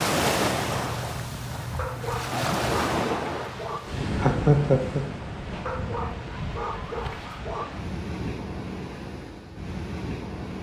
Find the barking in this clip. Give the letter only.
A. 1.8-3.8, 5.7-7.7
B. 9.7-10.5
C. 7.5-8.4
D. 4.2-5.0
A.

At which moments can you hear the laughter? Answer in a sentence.
The laughter can be heard from 4.2 to 5.0 s.